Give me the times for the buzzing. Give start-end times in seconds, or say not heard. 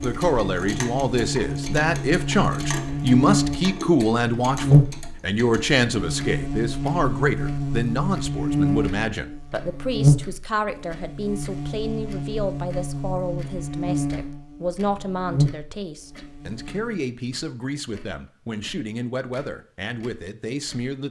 0.0-17.1.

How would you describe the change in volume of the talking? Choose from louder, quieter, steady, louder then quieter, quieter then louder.
quieter.